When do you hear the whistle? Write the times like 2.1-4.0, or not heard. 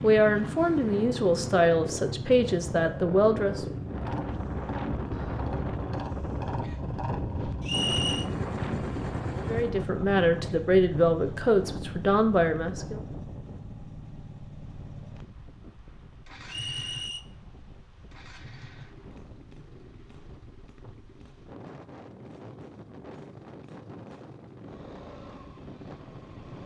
7.6-8.3, 16.4-17.2.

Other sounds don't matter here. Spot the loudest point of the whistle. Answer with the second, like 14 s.
8 s.